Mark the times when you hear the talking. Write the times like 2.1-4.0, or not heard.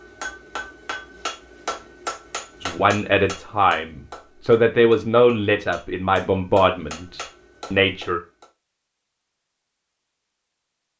2.6-8.2.